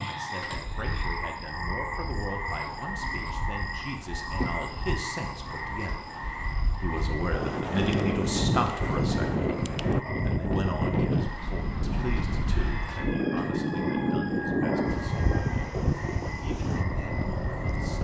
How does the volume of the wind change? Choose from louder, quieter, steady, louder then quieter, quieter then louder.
louder.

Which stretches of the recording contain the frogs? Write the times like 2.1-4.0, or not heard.
0.0-17.9.